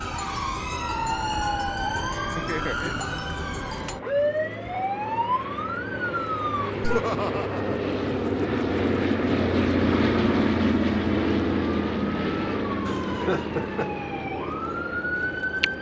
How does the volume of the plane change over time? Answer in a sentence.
The volume of the plane goes up, then down.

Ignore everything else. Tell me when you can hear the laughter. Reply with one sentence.
The laughter can be heard from 2.2 to 3.0 s, from 6.8 to 8.1 s and from 12.8 to 13.9 s.